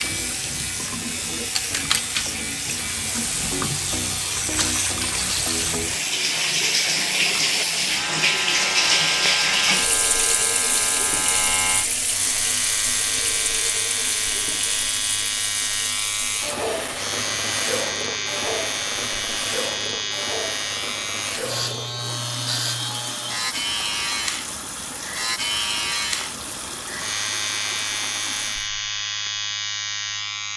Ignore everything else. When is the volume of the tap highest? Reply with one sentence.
The loudest moment of the tap is at 9 seconds.